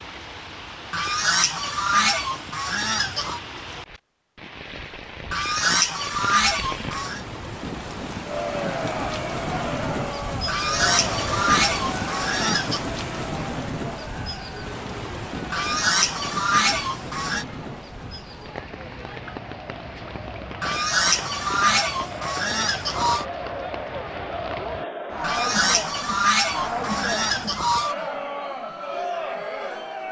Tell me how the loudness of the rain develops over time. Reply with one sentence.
The loudness of the rain goes up, then down.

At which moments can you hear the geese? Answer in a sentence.
You can hear the geese from 0.9 to 3.4 s, from 5.3 to 7.2 s, from 10.4 to 12.8 s, from 15.5 to 17.4 s, from 20.6 to 23.2 s and from 25.2 to 27.9 s.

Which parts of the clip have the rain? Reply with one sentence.
The rain can be heard from 0.0 to 24.9 s.